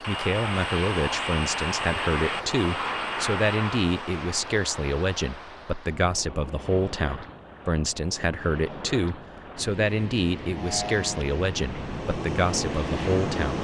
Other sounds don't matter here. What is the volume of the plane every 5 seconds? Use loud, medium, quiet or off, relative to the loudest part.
loud, off, loud.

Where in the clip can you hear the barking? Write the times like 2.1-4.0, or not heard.
not heard.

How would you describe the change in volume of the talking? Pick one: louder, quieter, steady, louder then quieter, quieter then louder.
steady.